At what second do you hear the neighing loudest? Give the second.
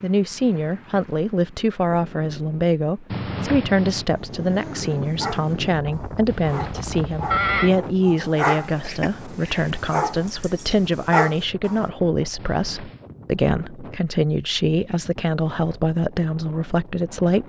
7 s.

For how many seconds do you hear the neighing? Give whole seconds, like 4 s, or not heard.
3 s.